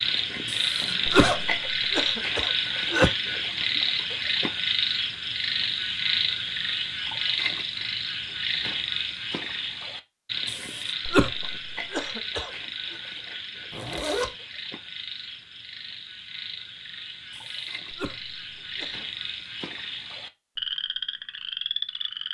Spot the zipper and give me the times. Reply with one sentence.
The zipper can be heard from 0.8 to 1.4 s and from 13.7 to 14.3 s.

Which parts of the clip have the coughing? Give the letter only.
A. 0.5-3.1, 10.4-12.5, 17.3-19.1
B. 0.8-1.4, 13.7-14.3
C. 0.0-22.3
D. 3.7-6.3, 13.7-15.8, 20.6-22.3
A.